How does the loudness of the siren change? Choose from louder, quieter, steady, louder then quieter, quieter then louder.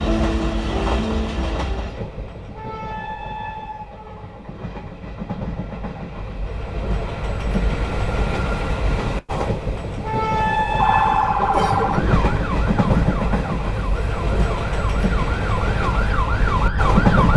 quieter then louder.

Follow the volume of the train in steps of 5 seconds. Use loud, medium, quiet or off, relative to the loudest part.
medium, medium, loud, loud.